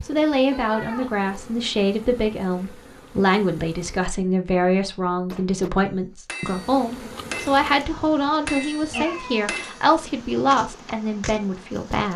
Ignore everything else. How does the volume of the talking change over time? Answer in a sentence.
The volume of the talking stays about the same.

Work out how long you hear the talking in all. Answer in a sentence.
The talking can be heard for 12 seconds in total.